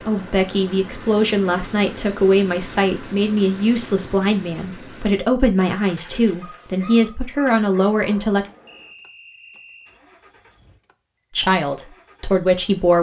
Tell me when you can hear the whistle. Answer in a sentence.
The whistle can be heard from 8.7 to 10.0 s.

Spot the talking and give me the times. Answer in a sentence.
You can hear the talking from 0.1 to 8.4 s and from 11.3 to 12.9 s.